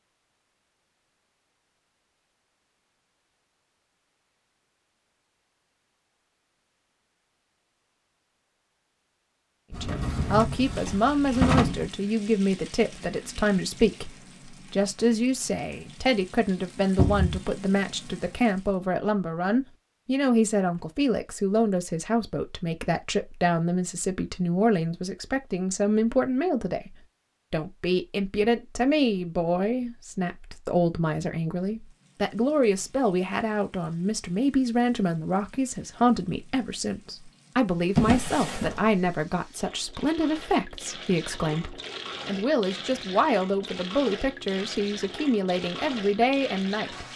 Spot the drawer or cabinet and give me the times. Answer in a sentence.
You can hear the drawer or cabinet from 9.7 to 11.9 s, from 16.9 to 17.4 s and from 38.0 to 39.0 s.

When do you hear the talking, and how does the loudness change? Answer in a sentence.
You can hear the talking from 9.7 to 47.0 s, at a steady volume.